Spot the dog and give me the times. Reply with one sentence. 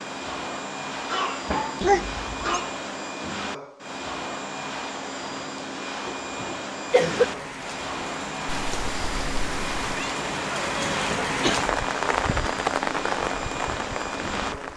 The dog can't be heard in this clip.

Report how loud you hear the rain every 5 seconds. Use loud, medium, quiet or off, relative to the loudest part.
off, medium, loud.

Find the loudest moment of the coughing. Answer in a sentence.
The volume of the coughing peaks at 7 seconds.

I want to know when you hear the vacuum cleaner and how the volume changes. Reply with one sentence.
You can hear the vacuum cleaner from 0.0 to 14.7 s, at a steady volume.